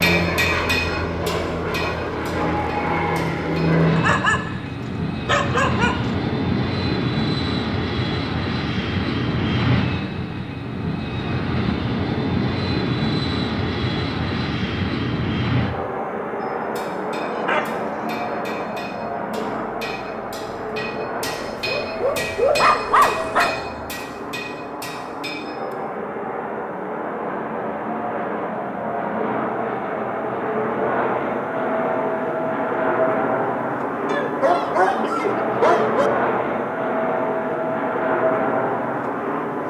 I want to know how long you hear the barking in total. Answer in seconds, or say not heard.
6 s.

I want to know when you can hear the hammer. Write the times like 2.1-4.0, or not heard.
0.0-3.8, 16.4-25.8.